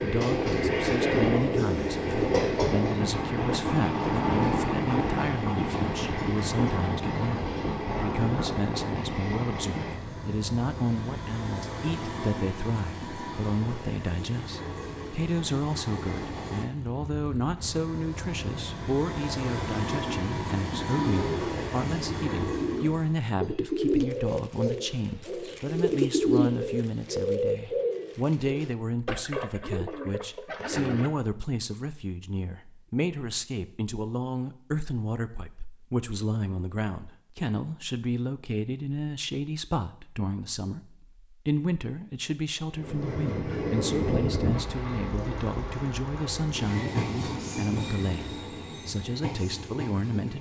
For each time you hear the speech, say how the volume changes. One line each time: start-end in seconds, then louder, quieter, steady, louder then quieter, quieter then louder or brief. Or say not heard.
0.0-50.3 steady.